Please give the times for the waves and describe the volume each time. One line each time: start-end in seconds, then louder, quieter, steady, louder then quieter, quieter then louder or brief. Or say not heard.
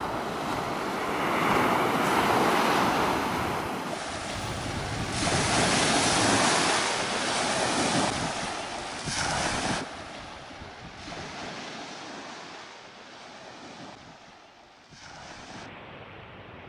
0.0-16.6 quieter.